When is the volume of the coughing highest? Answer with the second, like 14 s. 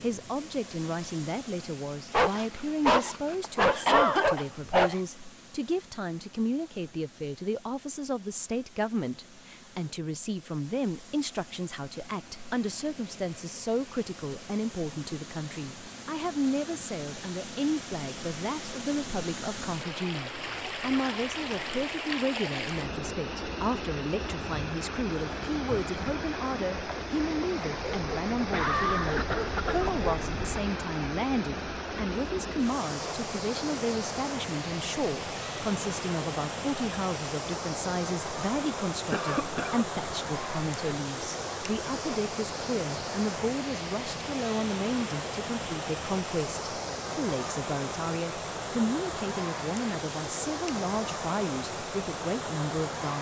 4 s.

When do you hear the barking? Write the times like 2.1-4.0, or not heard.
2.1-5.0, 27.7-30.6.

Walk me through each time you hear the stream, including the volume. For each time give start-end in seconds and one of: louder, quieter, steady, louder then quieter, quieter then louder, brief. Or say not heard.
0.0-53.1 louder.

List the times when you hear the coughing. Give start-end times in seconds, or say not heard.
3.4-4.5, 28.4-29.9, 39.1-39.9.